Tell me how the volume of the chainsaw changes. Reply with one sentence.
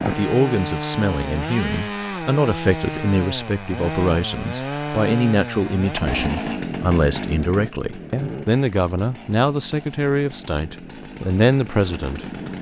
The volume of the chainsaw goes down.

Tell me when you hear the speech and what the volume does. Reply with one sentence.
The speech can be heard from 0.1 to 12.5 s, at a steady volume.